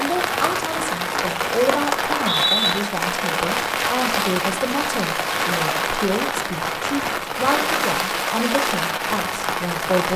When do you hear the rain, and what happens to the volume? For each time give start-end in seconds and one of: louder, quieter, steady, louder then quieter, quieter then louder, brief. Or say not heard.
0.0-10.1 steady.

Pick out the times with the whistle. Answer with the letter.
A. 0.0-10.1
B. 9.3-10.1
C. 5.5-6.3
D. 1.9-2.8
D.